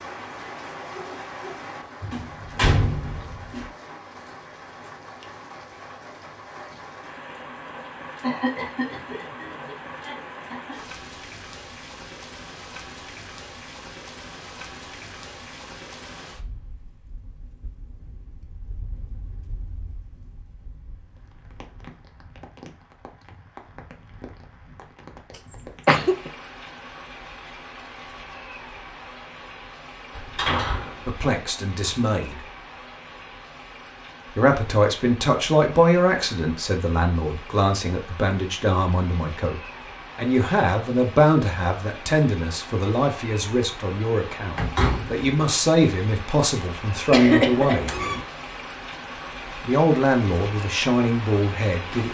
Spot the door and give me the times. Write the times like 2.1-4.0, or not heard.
2.0-3.6, 30.1-31.1, 44.5-45.3.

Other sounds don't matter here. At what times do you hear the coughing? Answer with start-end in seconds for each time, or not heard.
8.2-10.8, 25.4-26.3, 47.1-48.2.